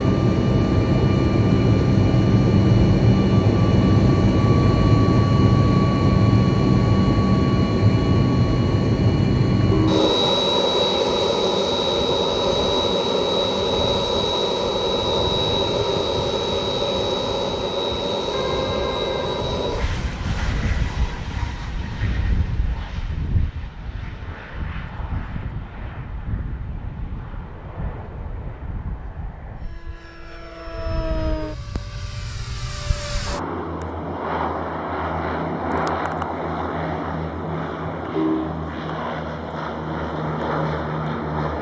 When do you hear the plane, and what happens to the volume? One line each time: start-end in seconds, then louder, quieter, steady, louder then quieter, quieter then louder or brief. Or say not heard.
0.0-41.5 quieter then louder.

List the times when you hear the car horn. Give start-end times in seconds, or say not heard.
9.7-10.3, 18.3-19.4, 38.0-38.5.